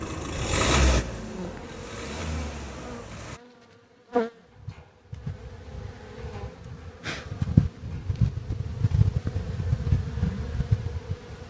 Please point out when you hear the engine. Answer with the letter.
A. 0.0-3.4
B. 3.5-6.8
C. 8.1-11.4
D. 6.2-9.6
A.